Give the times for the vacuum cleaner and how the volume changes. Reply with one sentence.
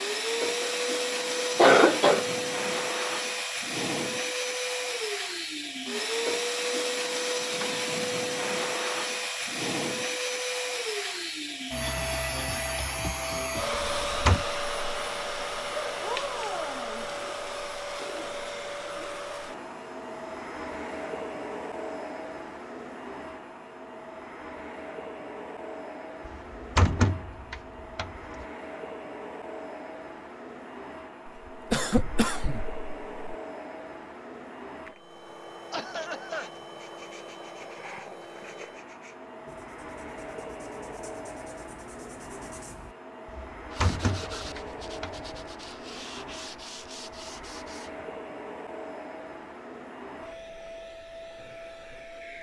The vacuum cleaner can be heard from 0.0 to 52.3 s, getting quieter.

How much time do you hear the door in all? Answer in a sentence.
You can hear the door for 5 seconds altogether.